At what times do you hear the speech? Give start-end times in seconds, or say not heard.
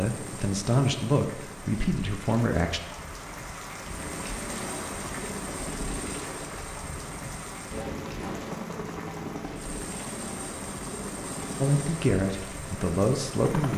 0.0-2.8, 11.6-13.7.